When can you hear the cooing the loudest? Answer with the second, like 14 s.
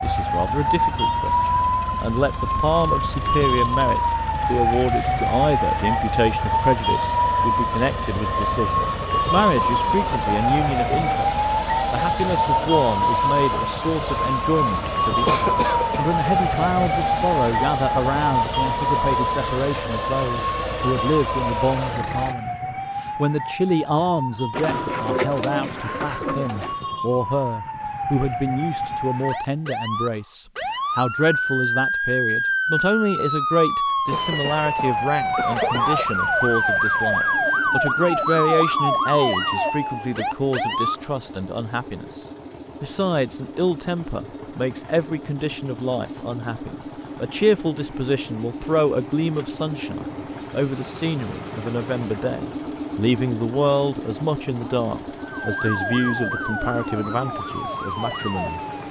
25 s.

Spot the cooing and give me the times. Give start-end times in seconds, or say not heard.
24.5-26.8.